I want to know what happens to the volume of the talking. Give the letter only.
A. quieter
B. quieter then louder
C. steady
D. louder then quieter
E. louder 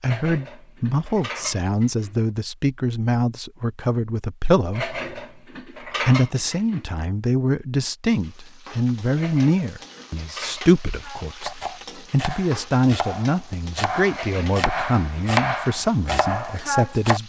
C.